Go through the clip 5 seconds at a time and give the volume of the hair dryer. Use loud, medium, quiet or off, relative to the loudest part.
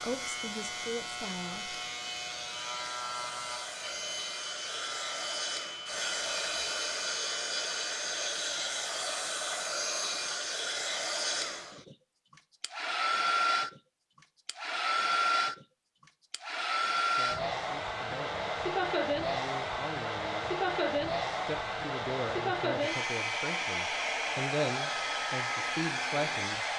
medium, loud, loud, loud, loud, loud.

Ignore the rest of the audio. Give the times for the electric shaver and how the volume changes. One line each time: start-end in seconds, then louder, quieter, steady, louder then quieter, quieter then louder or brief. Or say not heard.
0.0-10.3 quieter.